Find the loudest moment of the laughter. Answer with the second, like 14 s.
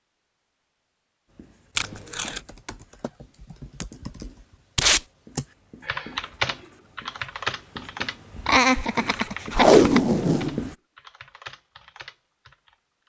9 s.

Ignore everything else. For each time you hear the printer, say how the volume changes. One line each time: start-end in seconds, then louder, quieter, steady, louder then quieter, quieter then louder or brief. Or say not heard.
not heard.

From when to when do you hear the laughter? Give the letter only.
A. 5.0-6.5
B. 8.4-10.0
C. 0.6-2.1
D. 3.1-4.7
B.